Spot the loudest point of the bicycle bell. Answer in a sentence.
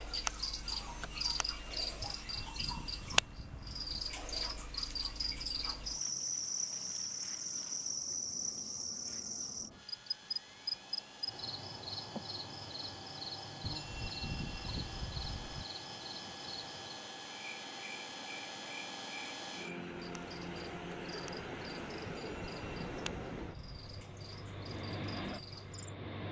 The loudest moment of the bicycle bell is at 14 seconds.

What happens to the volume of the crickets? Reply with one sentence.
The volume of the crickets goes down.